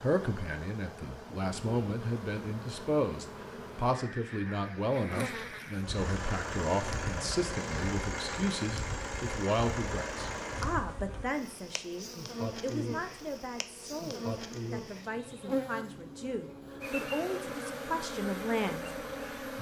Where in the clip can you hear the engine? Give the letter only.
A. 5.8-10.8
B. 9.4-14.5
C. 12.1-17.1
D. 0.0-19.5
A.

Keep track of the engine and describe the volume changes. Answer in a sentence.
The loudness of the engine stays about the same.